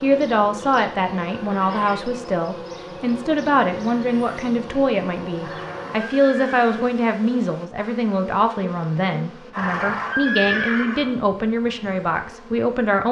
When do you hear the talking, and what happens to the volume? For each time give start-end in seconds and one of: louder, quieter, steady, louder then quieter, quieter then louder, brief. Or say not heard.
0.0-13.0 steady.